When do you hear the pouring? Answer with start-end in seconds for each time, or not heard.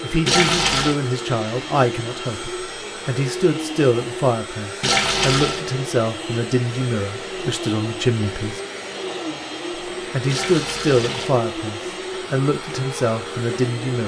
0.2-0.9, 4.8-5.6, 10.2-11.3.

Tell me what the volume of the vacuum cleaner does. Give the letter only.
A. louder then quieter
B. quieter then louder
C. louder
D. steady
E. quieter
D.